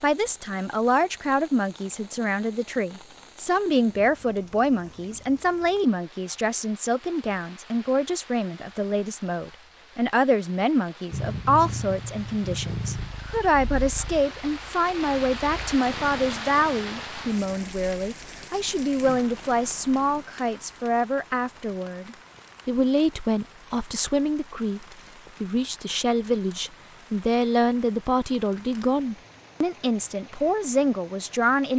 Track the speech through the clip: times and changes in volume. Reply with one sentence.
The speech can be heard from 0.0 to 31.7 s, at a steady volume.